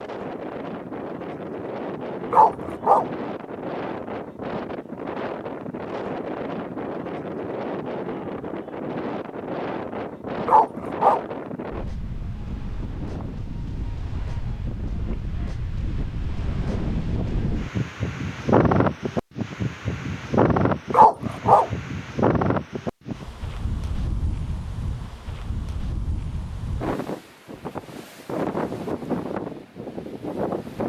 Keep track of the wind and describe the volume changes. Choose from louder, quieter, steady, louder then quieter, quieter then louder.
louder then quieter.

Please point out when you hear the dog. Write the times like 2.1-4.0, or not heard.
2.3-3.0, 10.4-11.2, 20.9-21.7.